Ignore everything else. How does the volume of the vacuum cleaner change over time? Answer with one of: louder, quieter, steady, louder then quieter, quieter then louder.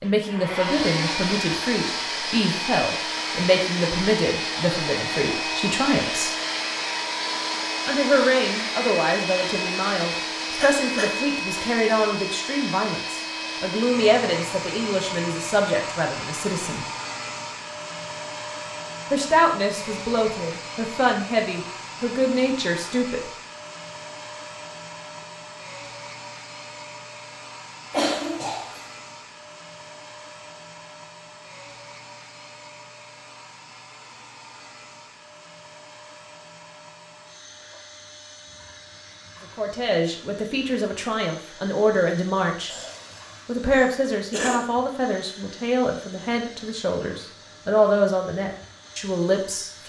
quieter.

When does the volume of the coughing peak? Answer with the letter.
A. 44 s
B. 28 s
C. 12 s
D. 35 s
B.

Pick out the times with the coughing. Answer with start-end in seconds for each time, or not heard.
10.6-11.1, 27.9-28.8, 42.6-44.6.